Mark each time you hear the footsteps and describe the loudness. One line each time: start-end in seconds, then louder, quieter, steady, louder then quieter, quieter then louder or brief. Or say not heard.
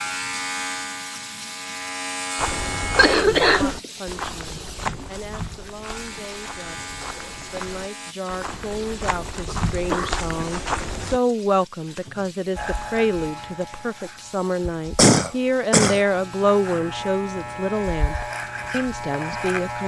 2.4-11.2 quieter then louder.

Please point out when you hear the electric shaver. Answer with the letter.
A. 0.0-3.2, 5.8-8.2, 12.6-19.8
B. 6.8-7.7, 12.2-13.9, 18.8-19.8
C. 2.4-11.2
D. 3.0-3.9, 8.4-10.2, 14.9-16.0
A.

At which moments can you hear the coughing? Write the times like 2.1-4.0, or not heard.
3.0-3.9, 8.4-10.2, 14.9-16.0.